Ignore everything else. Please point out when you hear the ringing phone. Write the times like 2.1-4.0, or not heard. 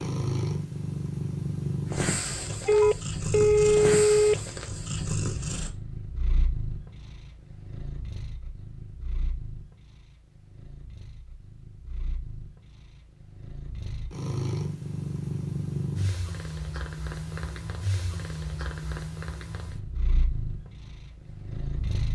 2.6-4.3.